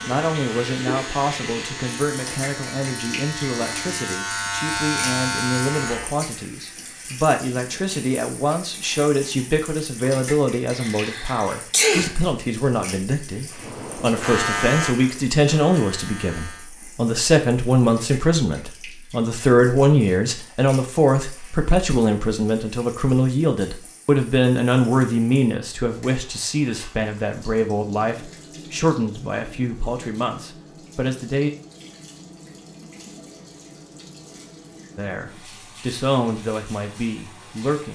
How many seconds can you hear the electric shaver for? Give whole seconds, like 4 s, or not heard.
9 s.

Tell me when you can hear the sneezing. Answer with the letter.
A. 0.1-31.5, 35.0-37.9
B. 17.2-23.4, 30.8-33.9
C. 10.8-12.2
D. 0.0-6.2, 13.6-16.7
C.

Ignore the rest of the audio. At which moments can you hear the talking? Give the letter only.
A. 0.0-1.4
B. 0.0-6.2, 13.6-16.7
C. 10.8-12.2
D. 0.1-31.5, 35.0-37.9
D.